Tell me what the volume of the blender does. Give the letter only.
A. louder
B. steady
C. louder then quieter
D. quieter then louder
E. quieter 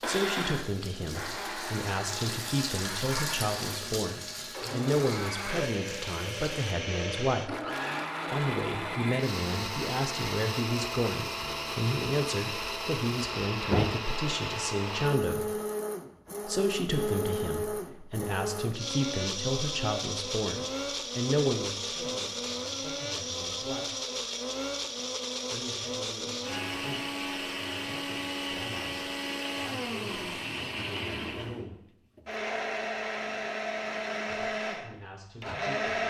B.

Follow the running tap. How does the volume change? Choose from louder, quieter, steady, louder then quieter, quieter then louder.
louder then quieter.